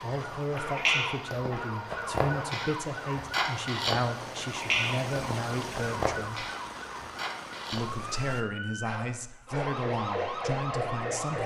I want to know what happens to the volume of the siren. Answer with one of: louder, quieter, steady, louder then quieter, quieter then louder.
quieter then louder.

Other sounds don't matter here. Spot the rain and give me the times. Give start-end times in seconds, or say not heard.
0.0-8.4.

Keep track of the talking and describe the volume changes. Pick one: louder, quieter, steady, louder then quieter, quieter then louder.
steady.